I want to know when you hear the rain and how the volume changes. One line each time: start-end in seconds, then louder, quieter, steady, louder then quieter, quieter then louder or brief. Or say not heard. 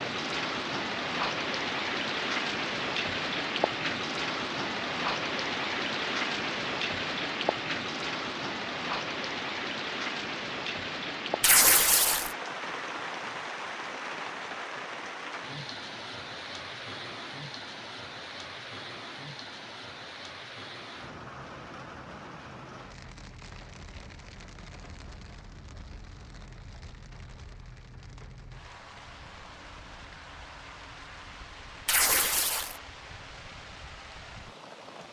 0.0-35.0 quieter.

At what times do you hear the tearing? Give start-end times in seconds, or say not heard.
11.4-12.3, 31.9-32.8.